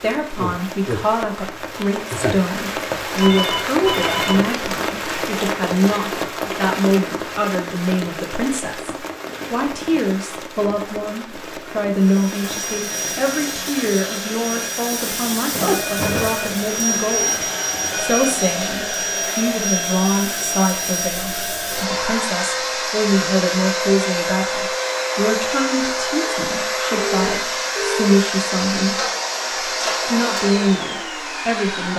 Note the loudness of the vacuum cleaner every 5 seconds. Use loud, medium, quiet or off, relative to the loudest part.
off, off, medium, loud, loud, loud, loud.